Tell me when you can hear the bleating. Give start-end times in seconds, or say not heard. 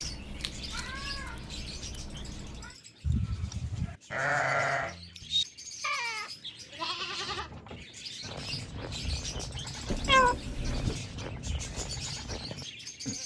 3.0-13.2.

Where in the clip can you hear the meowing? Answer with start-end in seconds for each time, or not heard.
0.0-2.7, 9.9-11.0.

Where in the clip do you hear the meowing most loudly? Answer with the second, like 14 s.
10 s.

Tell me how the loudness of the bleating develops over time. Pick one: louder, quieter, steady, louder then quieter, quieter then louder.
quieter.